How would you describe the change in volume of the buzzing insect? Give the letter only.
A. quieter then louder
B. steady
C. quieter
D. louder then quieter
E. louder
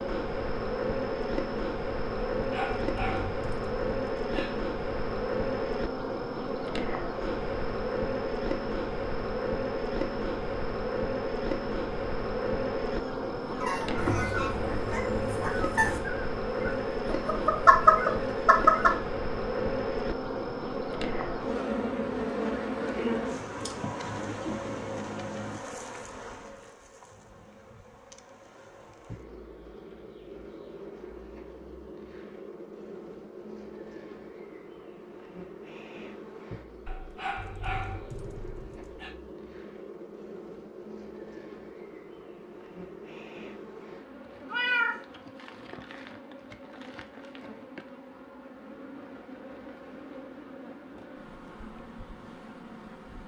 C.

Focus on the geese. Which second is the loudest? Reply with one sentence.
The volume of the geese peaks at 18 seconds.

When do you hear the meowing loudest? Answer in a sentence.
The loudest moment of the meowing is at 45 seconds.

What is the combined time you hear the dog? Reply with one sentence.
You can hear the dog for 5 seconds altogether.